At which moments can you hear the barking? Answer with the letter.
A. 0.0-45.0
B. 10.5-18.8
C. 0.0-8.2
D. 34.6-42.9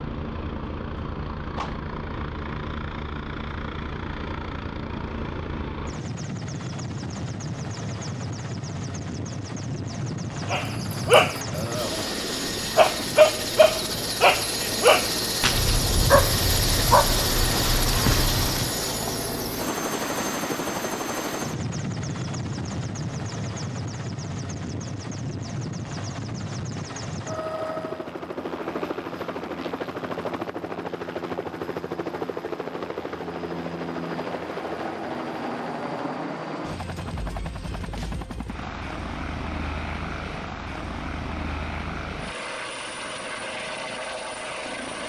B.